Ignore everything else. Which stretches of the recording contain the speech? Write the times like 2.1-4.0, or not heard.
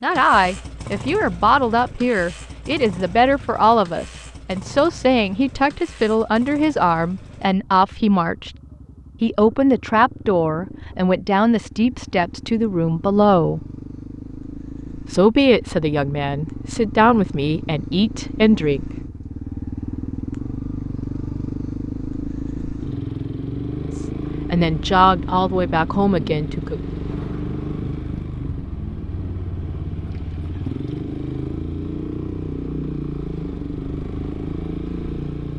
0.0-8.5, 9.2-13.6, 15.1-18.8, 23.9-26.8.